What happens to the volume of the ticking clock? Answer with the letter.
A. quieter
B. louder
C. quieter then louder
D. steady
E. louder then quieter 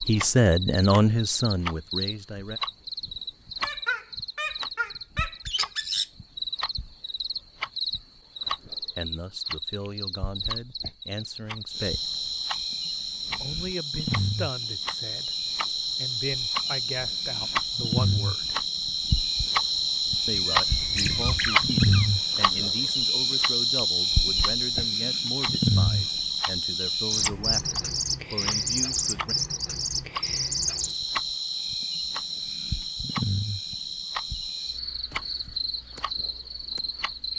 E.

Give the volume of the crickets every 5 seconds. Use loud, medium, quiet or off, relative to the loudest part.
medium, medium, medium, loud, loud, loud, medium, medium.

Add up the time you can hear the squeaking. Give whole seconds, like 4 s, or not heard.
4 s.